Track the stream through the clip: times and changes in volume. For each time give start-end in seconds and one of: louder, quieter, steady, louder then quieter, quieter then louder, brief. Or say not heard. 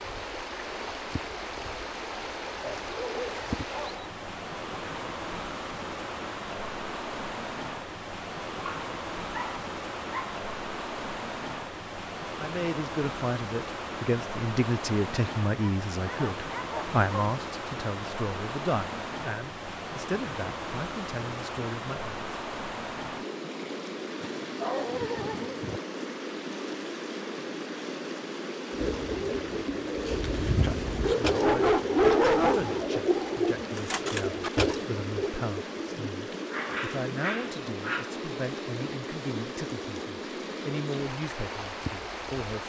0.0-42.6 steady.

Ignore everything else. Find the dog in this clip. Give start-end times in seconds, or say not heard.
2.6-4.1, 8.7-10.2, 15.6-17.2, 24.2-25.8, 31.0-32.9, 35.9-38.1.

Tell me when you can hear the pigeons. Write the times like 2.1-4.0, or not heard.
28.7-35.3.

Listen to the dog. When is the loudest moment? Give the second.
32 s.